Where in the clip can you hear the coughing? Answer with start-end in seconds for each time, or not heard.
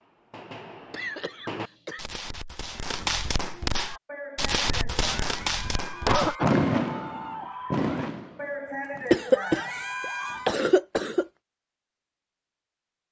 0.9-2.0, 4.7-6.5, 9.1-11.2.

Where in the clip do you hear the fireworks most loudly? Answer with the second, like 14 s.
7 s.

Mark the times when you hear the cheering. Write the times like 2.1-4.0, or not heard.
3.7-10.6.